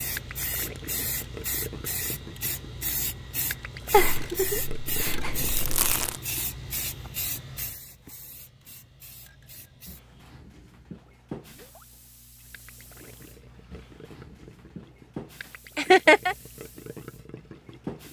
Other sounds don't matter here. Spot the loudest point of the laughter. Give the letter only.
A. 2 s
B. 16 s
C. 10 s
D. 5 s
B.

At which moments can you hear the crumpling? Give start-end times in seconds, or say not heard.
5.0-6.2.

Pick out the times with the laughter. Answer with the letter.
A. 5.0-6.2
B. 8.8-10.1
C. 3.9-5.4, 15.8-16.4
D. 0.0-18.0
C.